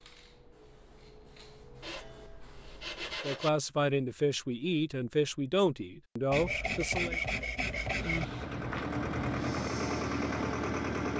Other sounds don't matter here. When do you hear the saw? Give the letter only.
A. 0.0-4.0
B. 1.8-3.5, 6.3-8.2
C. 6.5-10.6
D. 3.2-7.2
B.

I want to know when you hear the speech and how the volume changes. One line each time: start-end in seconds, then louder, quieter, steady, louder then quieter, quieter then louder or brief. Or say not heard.
3.2-7.2 steady.